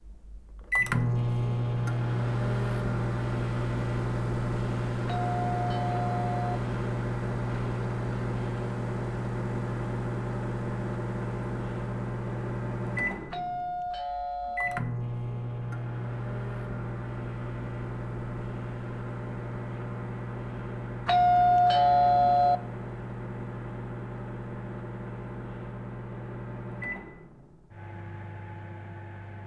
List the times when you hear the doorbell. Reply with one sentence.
You can hear the doorbell from 5.0 to 6.6 s, from 13.3 to 14.8 s and from 21.1 to 22.6 s.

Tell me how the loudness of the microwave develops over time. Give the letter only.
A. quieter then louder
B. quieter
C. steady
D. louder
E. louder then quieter
B.